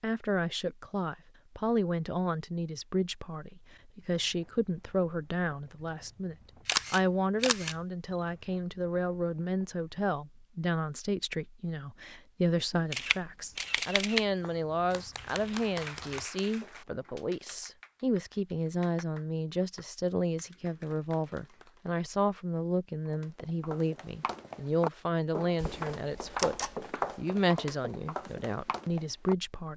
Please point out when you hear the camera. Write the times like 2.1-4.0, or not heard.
6.7-7.8, 12.7-14.2, 25.6-26.8.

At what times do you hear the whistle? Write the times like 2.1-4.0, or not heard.
not heard.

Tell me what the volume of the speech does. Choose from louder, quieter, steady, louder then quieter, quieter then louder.
steady.